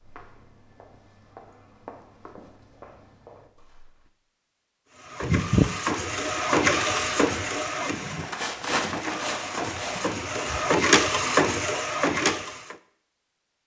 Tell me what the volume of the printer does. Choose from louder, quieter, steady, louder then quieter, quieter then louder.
quieter then louder.